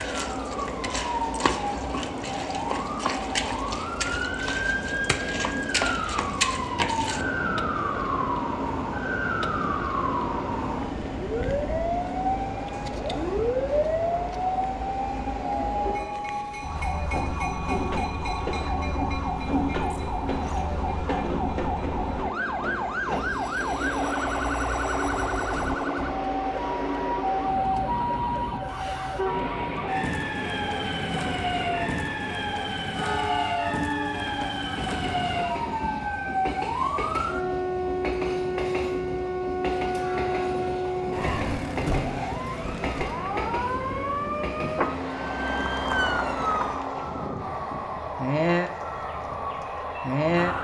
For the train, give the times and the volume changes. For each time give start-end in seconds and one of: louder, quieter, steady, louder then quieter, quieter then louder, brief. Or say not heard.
0.0-50.5 steady.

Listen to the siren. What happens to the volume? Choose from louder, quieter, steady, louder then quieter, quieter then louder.
steady.